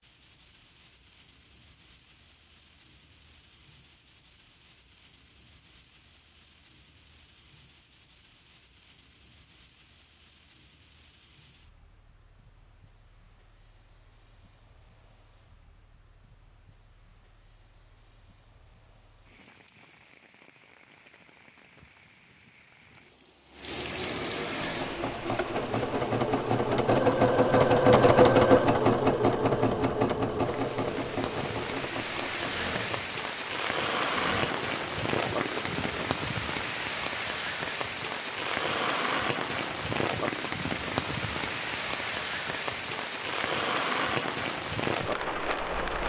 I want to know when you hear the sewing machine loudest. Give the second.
28 s.